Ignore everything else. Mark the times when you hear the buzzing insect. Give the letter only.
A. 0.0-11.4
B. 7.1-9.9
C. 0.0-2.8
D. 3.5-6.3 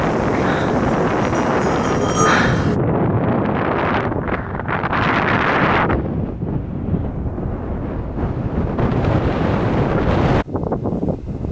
C.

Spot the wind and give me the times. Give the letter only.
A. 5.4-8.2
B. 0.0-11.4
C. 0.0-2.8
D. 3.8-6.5
B.